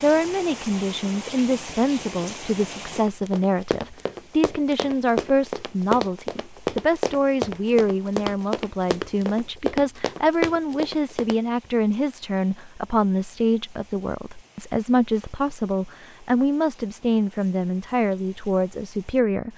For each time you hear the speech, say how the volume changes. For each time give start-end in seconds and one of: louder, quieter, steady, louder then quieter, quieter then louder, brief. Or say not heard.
0.0-19.5 steady.